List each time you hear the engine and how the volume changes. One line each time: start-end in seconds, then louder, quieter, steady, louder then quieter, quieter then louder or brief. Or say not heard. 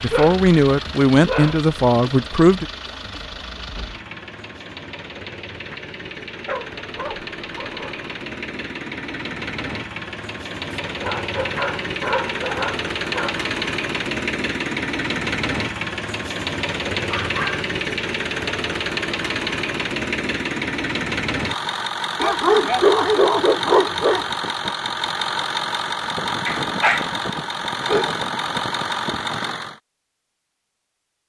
0.0-29.8 louder.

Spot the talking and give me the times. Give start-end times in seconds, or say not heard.
0.0-2.6.